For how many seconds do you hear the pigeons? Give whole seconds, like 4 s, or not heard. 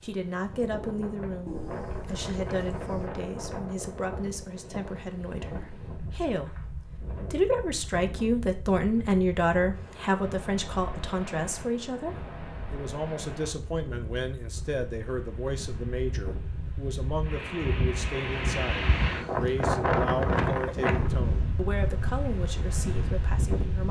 2 s.